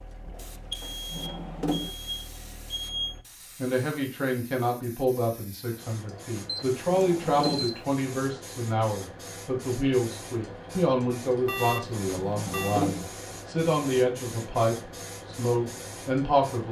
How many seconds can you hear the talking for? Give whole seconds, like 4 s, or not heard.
13 s.